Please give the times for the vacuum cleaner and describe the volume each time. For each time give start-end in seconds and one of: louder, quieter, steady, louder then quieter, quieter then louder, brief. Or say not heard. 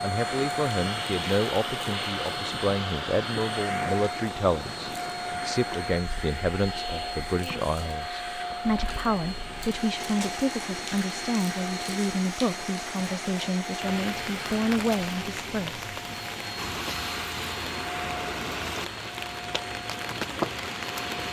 0.0-21.2 quieter.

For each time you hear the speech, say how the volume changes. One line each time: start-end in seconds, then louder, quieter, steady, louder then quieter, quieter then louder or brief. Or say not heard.
0.0-16.1 steady.